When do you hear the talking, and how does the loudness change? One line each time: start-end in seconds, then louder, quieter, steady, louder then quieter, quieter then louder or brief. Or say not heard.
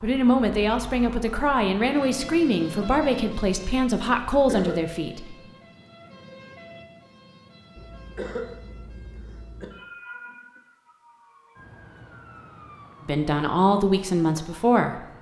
0.0-5.3 steady
13.1-15.1 brief.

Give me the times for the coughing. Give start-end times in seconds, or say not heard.
4.3-5.0, 7.8-9.7.